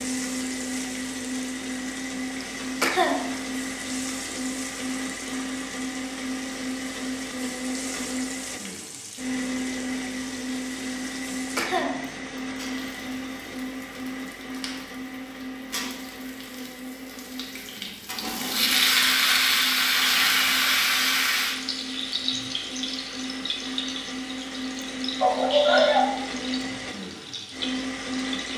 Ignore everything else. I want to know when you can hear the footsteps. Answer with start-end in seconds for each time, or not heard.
not heard.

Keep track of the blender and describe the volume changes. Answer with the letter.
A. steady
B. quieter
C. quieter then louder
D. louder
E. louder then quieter
C.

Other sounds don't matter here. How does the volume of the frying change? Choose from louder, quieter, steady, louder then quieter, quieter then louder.
louder then quieter.